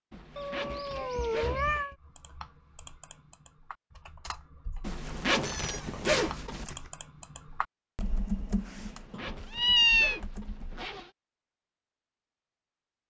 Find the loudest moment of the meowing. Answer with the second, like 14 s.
10 s.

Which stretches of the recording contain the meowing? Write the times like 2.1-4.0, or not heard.
0.3-1.9, 5.5-6.9, 9.1-10.2.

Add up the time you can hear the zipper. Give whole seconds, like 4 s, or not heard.
6 s.